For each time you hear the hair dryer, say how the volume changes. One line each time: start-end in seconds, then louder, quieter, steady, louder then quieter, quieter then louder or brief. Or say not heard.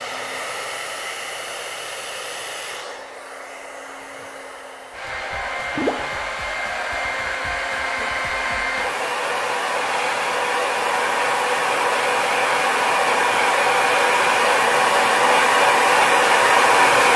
0.0-17.1 louder.